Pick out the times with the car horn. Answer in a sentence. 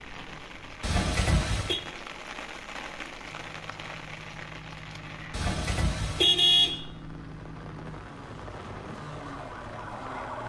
The car horn can be heard from 0.8 to 1.8 s and from 5.3 to 6.8 s.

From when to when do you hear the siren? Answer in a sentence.
You can hear the siren from 8.9 to 10.4 s.